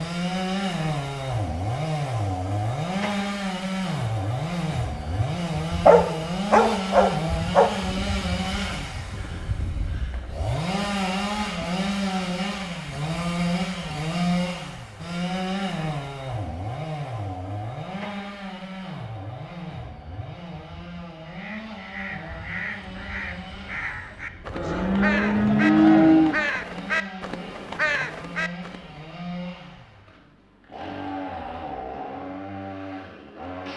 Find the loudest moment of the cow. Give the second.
26 s.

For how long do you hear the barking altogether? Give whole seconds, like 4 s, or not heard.
2 s.